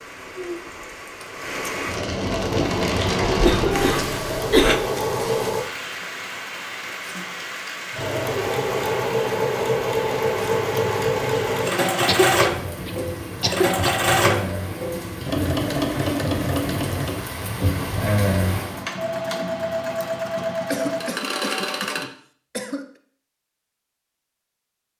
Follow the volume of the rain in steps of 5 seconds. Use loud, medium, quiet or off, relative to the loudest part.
loud, medium, medium, loud, off.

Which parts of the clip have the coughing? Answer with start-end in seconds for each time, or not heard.
3.3-4.8, 12.1-13.9, 20.7-22.9.